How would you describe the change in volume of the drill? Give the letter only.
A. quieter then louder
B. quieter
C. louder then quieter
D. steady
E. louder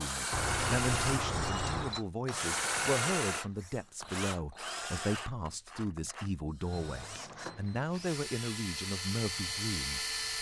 A.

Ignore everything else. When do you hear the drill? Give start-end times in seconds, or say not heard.
0.0-10.3.